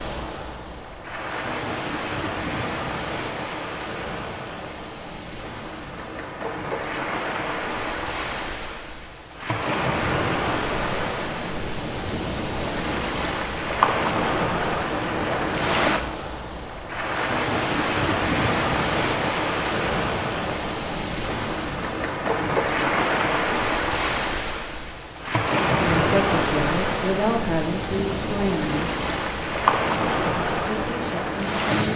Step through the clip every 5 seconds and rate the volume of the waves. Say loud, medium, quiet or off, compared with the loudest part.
medium, medium, loud, loud, loud, loud, loud.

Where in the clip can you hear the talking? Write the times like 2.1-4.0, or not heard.
25.8-28.9, 30.6-31.9.